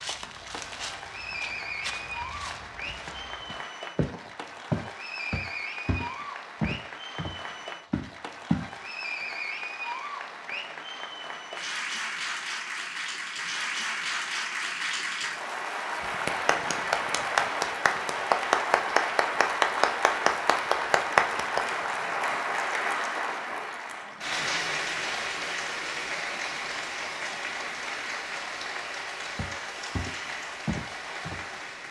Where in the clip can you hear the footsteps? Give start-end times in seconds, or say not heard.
0.0-8.7, 29.4-31.6.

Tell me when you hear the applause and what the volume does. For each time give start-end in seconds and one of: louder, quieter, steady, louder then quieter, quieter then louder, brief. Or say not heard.
0.0-31.8 louder then quieter.